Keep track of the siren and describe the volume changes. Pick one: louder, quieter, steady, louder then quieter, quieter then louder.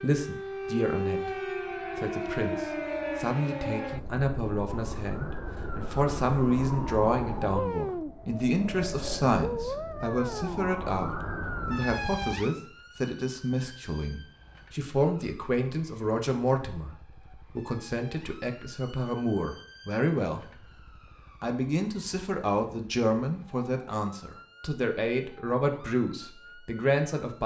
quieter.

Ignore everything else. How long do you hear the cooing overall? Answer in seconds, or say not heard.
not heard.